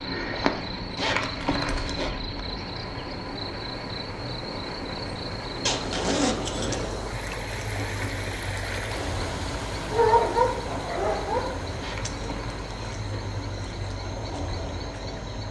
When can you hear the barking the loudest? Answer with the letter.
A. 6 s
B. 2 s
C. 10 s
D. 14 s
C.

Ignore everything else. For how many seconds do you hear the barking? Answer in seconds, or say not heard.
2 s.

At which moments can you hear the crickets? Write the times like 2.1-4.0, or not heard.
0.0-15.4.